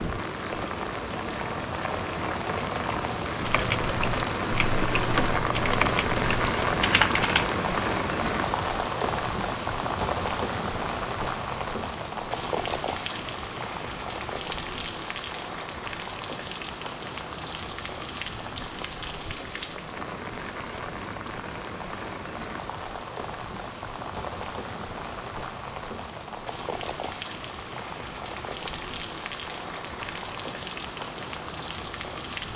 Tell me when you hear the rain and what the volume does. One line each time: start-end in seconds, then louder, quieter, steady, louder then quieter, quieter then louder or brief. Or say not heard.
0.0-32.5 quieter.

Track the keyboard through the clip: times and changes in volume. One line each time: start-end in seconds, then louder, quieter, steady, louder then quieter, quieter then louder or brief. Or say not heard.
3.4-7.5 louder.